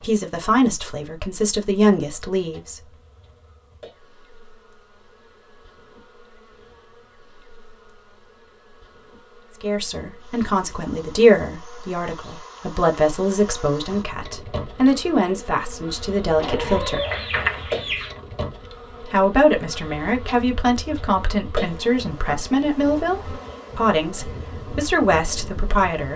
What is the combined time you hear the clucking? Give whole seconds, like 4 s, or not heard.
2 s.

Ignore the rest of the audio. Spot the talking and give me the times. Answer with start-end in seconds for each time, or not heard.
0.0-2.8, 9.6-17.0, 19.0-26.1.